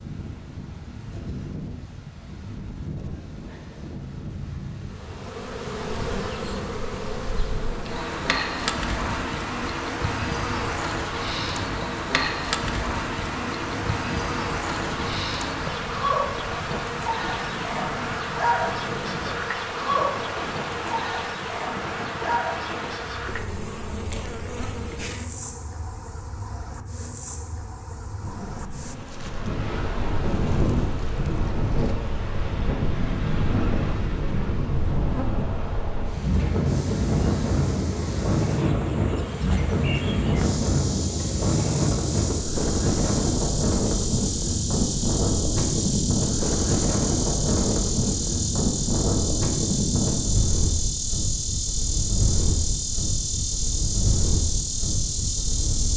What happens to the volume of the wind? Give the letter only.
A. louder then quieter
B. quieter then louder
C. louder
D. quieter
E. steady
C.